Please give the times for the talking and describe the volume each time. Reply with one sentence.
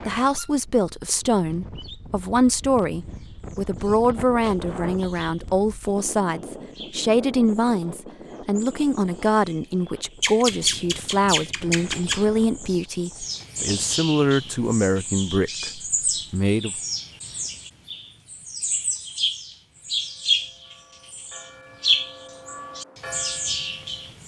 The talking can be heard from 0.1 to 16.8 s, at a steady volume.